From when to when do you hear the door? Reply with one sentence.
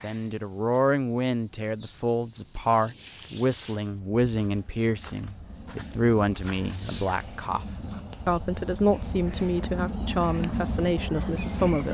You can't hear the door here.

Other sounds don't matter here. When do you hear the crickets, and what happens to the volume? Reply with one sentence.
You can hear the crickets from 0.0 to 11.8 s, getting louder.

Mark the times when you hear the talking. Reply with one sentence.
The talking can be heard from 0.0 to 11.8 s.